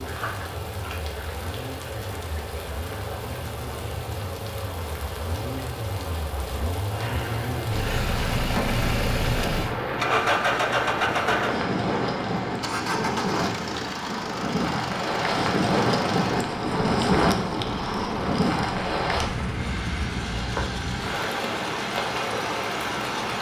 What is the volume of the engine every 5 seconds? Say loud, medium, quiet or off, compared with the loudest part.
quiet, loud, loud, medium, medium.